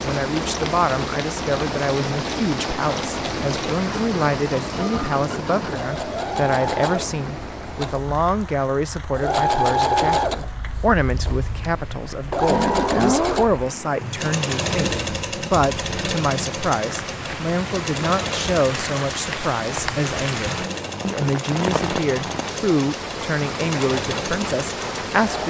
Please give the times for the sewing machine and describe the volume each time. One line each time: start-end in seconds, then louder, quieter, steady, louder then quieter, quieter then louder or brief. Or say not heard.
0.1-25.4 louder then quieter.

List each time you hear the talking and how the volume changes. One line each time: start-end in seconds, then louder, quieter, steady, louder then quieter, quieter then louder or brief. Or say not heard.
0.0-25.4 steady.